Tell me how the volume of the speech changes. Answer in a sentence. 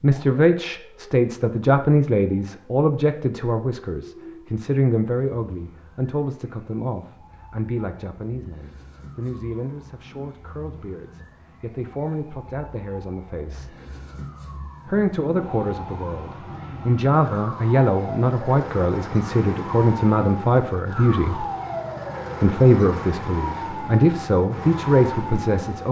The loudness of the speech goes down, then up.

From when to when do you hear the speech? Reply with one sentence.
The speech can be heard from 0.0 to 13.8 s, from 14.8 to 21.4 s and from 22.4 to 25.8 s.